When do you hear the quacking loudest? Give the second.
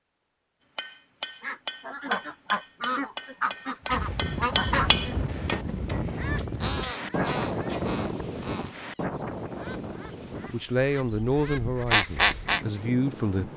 12 s.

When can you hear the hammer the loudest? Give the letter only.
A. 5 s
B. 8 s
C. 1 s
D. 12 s
A.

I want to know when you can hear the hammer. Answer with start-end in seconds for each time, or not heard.
0.8-8.0.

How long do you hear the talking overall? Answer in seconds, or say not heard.
3 s.